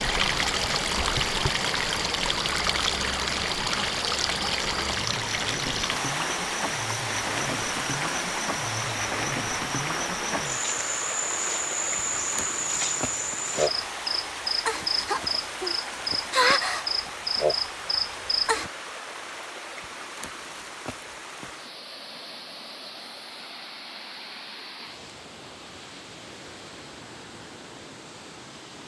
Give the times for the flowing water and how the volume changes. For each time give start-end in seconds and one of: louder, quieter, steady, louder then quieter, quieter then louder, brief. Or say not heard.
0.0-28.8 quieter.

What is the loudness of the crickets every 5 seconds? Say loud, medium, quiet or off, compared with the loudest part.
medium, medium, loud, loud, off, off.